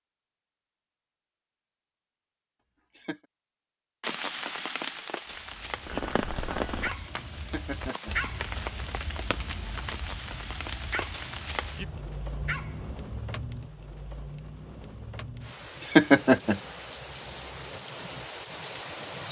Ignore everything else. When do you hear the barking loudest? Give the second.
8 s.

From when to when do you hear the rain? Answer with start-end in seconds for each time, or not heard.
4.0-19.2.